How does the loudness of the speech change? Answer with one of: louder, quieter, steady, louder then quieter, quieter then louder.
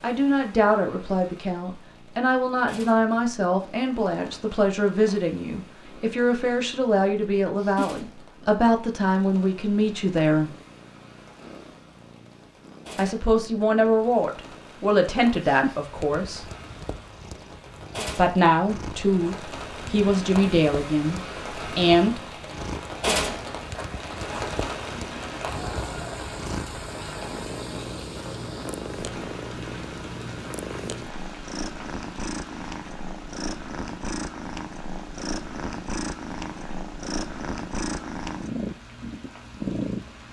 steady.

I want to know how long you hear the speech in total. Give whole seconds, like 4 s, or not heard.
18 s.